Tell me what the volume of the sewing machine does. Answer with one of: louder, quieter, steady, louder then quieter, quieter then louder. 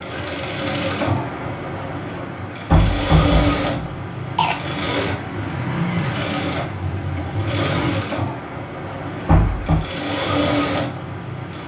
steady.